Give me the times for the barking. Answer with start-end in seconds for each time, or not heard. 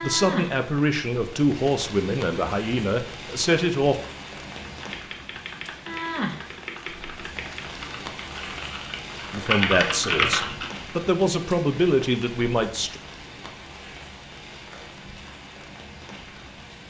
not heard.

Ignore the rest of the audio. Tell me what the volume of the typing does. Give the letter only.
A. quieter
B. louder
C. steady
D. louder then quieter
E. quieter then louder
B.